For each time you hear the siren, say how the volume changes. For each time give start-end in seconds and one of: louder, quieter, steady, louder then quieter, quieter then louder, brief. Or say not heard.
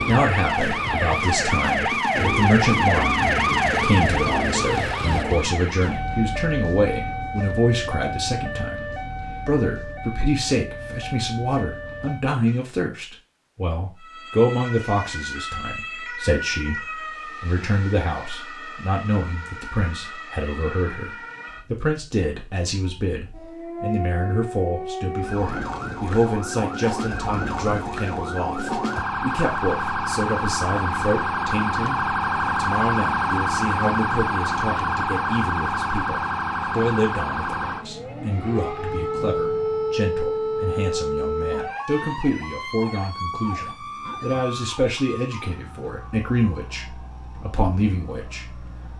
0.0-12.7 quieter
13.9-48.9 louder then quieter.